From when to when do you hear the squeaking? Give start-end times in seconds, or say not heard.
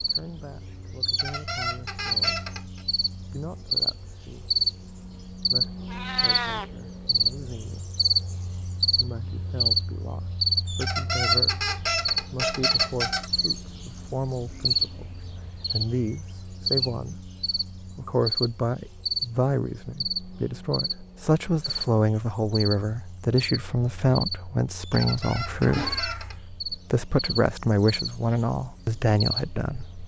1.1-2.9, 10.7-13.3, 24.8-26.4.